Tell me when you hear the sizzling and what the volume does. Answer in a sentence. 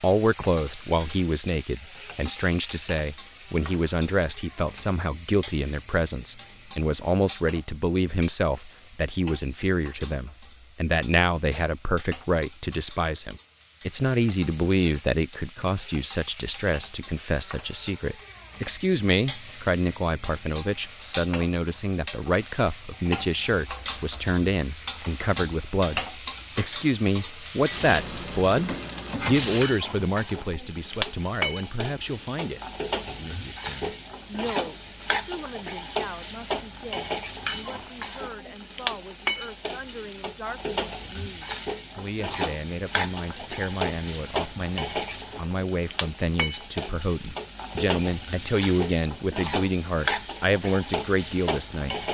You can hear the sizzling from 0.0 to 52.0 s, getting louder.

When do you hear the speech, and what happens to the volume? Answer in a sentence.
You can hear the speech from 0.0 to 52.0 s, getting quieter then louder.